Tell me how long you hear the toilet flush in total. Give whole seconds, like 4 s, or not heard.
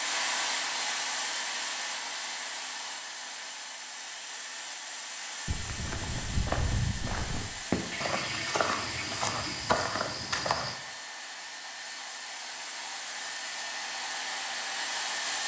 2 s.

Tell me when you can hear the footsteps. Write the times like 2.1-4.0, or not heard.
5.5-10.8.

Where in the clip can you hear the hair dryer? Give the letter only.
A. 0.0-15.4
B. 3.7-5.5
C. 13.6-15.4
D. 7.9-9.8
A.